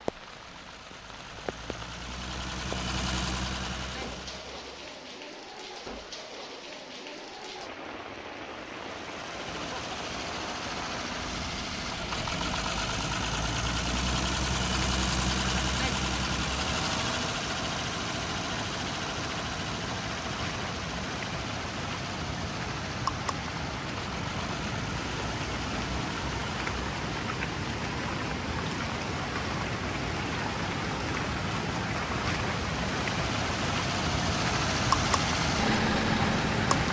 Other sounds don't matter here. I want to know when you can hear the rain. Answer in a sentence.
You can hear the rain from 0.0 to 36.8 s.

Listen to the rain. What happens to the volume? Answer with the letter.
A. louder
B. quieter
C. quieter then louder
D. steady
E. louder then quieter
A.